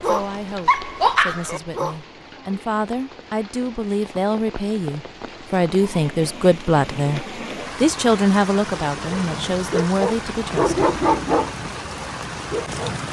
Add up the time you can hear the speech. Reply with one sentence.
You can hear the speech for 11 seconds altogether.